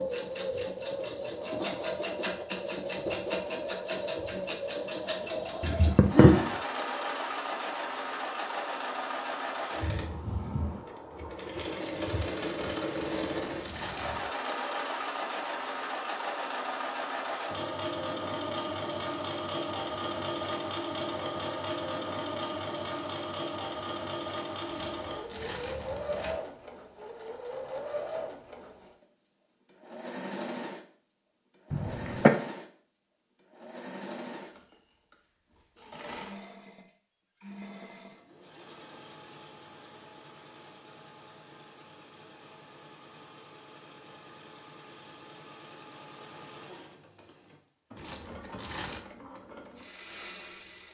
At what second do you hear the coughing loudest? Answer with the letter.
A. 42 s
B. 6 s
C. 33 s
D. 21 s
B.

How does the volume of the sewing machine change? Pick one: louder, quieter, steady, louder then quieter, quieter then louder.
quieter.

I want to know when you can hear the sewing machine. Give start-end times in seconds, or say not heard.
0.0-50.8.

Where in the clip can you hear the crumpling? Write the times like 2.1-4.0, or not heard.
13.0-14.2, 24.6-26.4, 48.0-49.0.